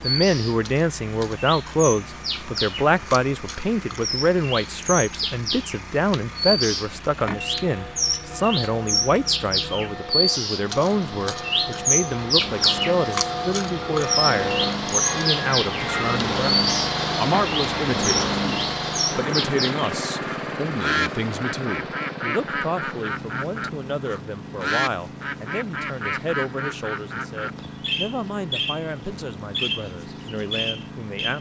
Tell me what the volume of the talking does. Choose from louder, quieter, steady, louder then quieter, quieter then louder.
quieter.